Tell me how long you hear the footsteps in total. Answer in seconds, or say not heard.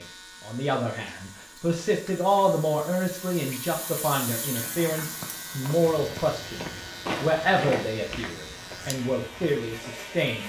5 s.